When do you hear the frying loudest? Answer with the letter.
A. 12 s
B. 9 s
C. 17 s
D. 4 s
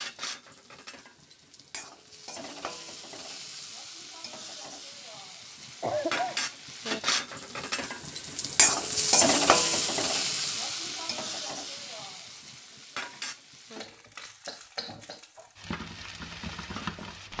B.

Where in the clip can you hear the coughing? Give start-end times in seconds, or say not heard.
5.8-6.5.